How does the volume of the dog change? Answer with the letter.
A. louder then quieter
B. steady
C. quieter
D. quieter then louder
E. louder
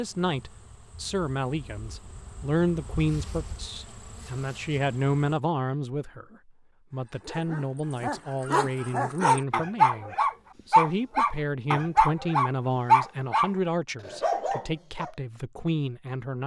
A.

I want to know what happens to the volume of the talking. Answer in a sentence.
The volume of the talking stays about the same.